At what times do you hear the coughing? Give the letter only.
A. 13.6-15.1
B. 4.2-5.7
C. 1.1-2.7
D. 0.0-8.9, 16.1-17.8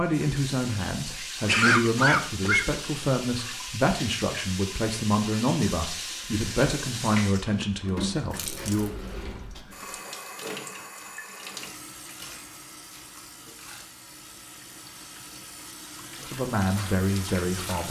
C.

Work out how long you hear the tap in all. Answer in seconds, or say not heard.
18 s.